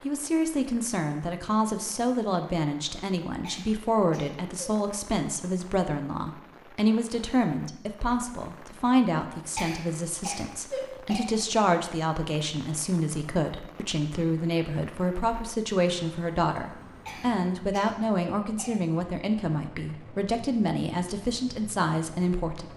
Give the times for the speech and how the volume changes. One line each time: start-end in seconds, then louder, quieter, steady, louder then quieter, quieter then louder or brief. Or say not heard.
0.0-22.7 steady.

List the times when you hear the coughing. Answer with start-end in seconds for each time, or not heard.
3.4-4.8, 9.6-11.2, 17.1-18.7.